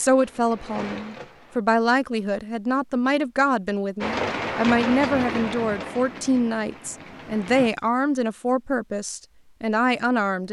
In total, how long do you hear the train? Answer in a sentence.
The train can be heard for 5 seconds in total.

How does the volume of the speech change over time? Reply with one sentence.
The volume of the speech stays about the same.